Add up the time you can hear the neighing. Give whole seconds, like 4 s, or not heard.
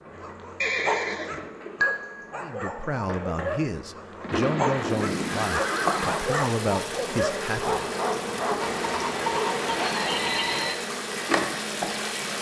6 s.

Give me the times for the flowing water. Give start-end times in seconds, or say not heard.
4.8-12.3.